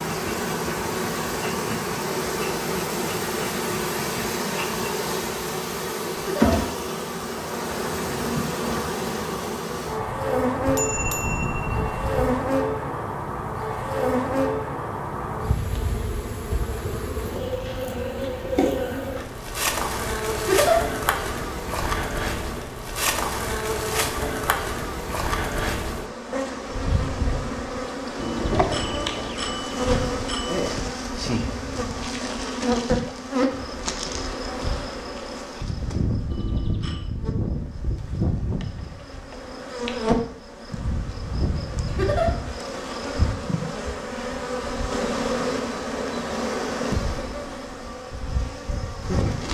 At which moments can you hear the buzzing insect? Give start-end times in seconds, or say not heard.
0.0-49.4.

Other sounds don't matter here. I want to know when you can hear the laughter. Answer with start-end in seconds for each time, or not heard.
6.2-6.6, 20.4-20.8, 41.9-42.3.